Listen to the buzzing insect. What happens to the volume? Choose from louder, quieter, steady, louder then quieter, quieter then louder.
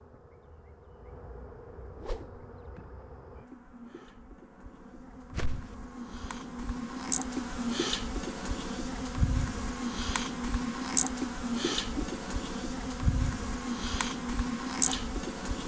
louder.